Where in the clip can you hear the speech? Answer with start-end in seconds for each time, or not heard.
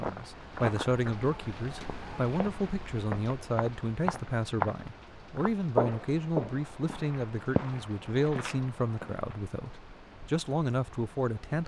0.0-11.6.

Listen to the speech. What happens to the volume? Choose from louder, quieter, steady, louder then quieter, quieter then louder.
steady.